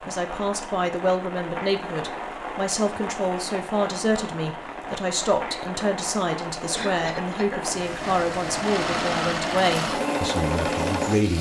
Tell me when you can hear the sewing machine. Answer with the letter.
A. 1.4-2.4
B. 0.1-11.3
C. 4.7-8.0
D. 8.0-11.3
D.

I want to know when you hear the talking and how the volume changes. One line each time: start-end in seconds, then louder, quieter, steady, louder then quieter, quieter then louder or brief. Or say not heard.
0.1-11.3 steady.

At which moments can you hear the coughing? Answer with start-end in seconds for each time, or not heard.
6.7-7.7.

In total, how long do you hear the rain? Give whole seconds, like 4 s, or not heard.
11 s.